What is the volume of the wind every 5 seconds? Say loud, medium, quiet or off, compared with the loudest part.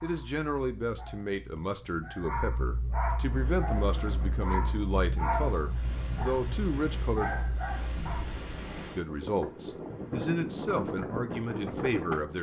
medium, medium, loud.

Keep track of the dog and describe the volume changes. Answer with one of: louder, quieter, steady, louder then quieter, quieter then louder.
louder.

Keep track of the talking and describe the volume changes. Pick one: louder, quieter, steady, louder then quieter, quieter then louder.
steady.